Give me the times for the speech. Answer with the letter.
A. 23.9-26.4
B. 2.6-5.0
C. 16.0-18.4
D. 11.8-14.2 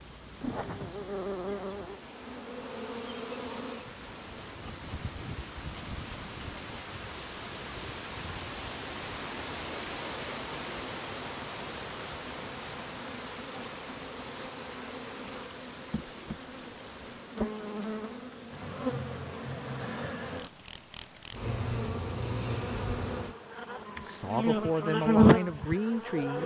A.